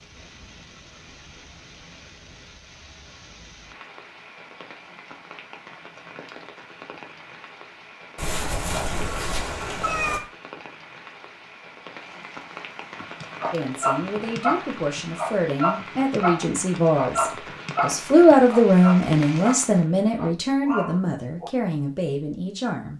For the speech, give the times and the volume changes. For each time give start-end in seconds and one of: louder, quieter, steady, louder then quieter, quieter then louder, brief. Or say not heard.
13.5-22.9 louder then quieter.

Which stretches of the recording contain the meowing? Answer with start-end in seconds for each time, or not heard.
8.2-10.2.